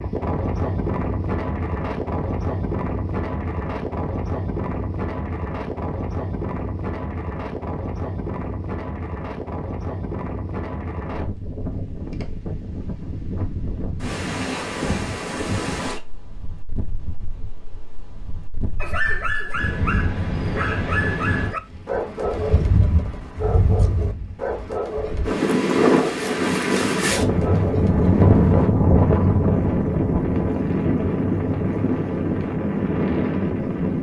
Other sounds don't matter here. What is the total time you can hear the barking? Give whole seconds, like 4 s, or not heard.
10 s.